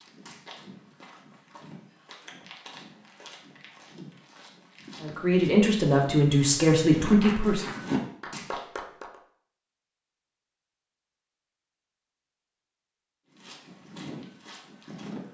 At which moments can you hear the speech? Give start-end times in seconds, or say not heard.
5.0-7.7.